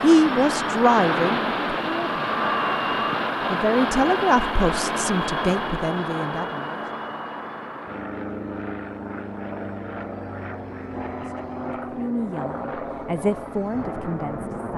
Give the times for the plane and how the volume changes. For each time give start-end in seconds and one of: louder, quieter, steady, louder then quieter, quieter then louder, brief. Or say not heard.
0.0-14.7 quieter.